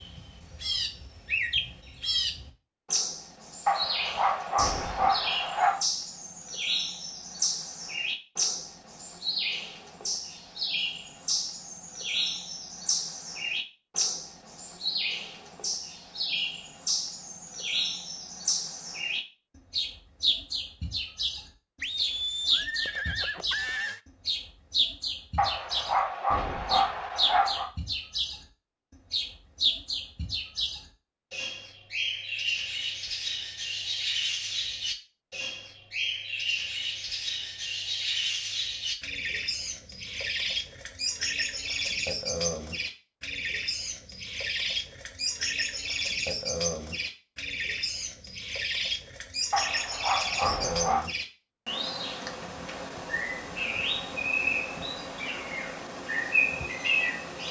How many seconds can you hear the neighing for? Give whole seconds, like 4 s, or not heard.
2 s.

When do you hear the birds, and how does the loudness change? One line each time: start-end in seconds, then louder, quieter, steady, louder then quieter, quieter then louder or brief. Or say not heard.
0.0-57.4 steady.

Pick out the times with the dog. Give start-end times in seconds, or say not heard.
3.6-5.8, 25.4-27.7, 49.5-51.1.